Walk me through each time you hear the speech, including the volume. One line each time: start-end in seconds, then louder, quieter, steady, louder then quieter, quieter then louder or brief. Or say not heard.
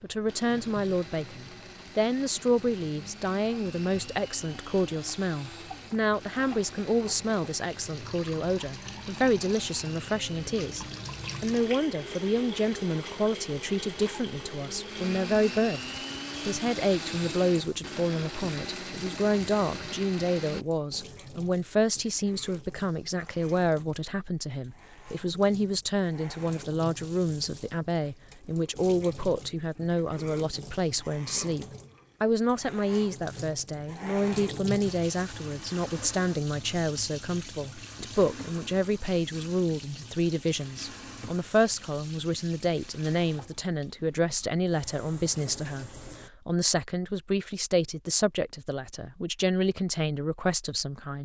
0.0-15.8 steady
16.4-51.2 steady.